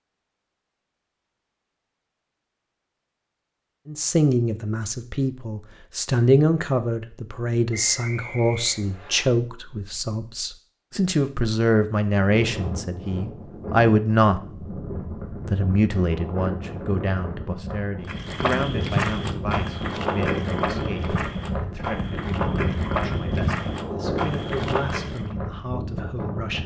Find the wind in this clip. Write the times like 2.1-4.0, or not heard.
12.2-26.6.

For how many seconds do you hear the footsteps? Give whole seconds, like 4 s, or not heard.
7 s.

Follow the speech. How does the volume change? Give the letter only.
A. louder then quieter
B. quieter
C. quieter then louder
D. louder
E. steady
B.